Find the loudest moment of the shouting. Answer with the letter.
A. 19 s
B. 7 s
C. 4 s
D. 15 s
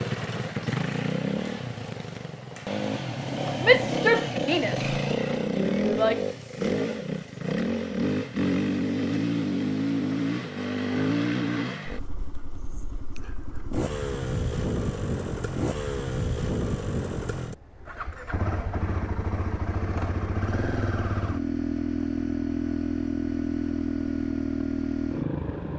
C.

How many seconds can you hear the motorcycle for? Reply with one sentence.
The motorcycle can be heard for 26 seconds in total.